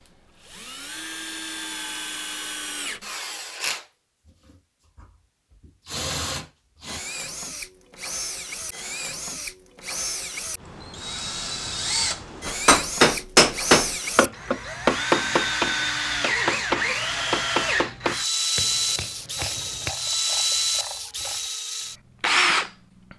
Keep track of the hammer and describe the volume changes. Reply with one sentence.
The volume of the hammer goes down.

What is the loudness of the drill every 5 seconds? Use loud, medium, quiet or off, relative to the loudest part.
medium, medium, medium, loud, loud.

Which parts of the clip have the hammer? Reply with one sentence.
The hammer can be heard from 12.4 to 19.9 s.